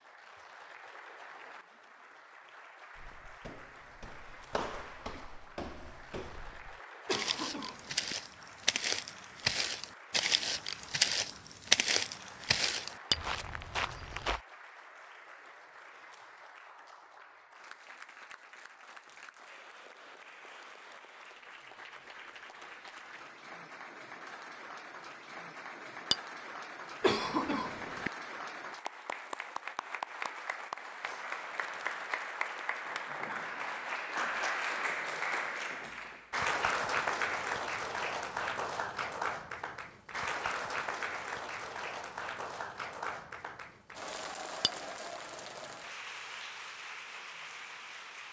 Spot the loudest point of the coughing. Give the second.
27 s.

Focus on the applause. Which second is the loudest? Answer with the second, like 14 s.
37 s.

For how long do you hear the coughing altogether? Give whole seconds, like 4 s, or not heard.
2 s.